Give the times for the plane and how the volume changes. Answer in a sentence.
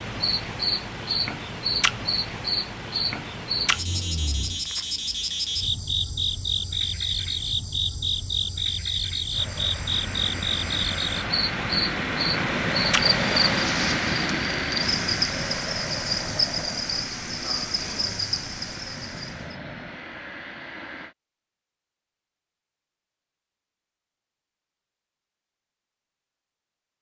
The plane can be heard from 9.3 to 21.1 s, getting louder then quieter.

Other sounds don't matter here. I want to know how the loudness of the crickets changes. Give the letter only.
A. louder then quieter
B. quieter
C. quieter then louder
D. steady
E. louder
D.